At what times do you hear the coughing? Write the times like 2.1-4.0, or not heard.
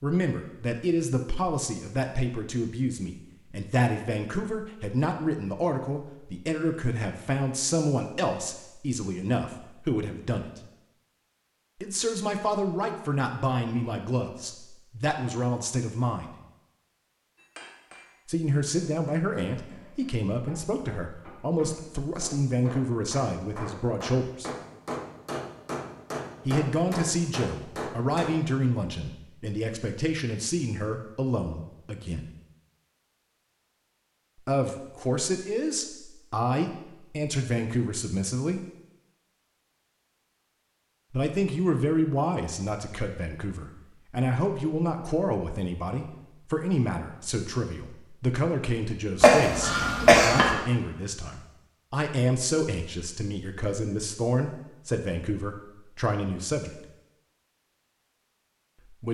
49.2-50.5.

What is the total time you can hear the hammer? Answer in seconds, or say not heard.
11 s.